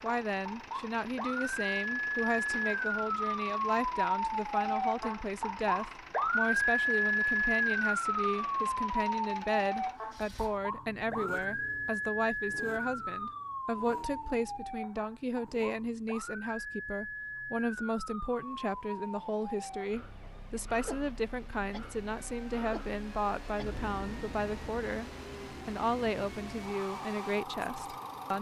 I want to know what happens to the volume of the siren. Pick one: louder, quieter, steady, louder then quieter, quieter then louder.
quieter.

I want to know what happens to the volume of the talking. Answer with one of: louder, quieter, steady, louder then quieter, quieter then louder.
steady.